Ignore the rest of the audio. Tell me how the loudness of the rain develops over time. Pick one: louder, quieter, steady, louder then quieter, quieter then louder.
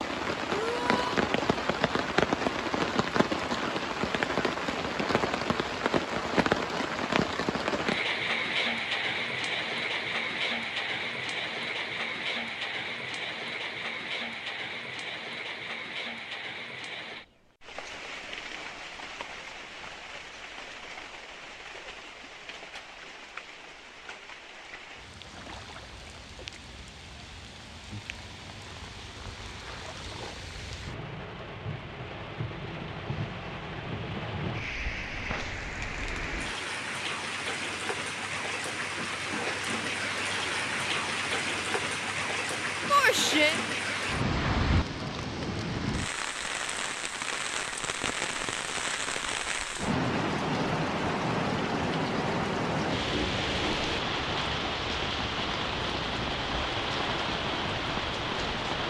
quieter then louder.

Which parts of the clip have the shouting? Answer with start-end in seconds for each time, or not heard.
0.5-1.2, 42.9-43.5.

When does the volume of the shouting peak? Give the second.
43 s.